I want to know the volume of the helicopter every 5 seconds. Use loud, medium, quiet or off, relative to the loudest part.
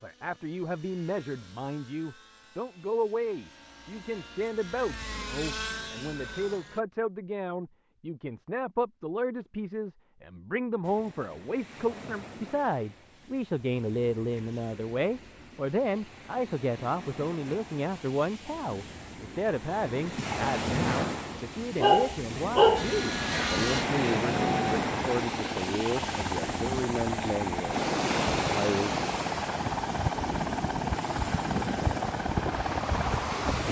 quiet, medium, off, off, loud, loud, loud.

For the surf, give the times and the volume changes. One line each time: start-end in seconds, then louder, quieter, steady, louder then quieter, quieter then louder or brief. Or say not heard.
10.8-33.6 louder.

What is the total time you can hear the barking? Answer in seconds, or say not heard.
2 s.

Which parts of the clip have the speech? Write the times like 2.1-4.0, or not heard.
0.0-29.1.